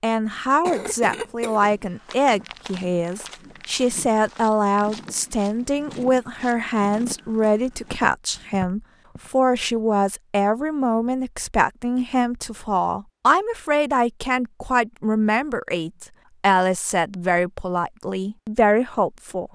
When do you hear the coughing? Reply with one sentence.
The coughing can be heard from 0.7 to 1.7 s.